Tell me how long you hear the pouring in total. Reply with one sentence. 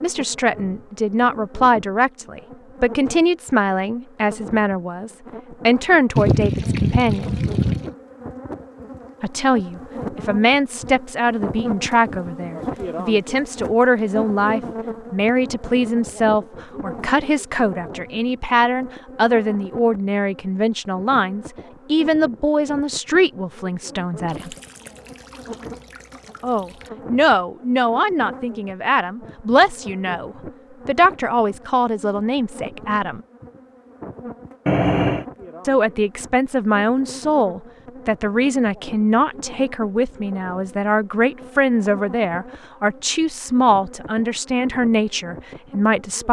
The pouring can be heard for 5 seconds in total.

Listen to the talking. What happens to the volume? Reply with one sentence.
The volume of the talking stays about the same.